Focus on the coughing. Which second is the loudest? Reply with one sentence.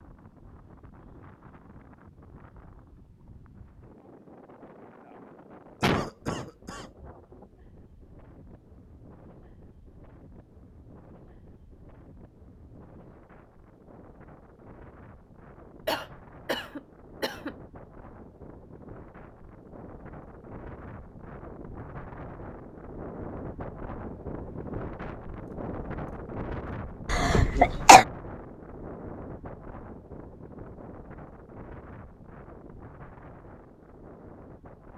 The loudest moment of the coughing is at 28 seconds.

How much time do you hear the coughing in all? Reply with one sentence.
You can hear the coughing for 4 seconds altogether.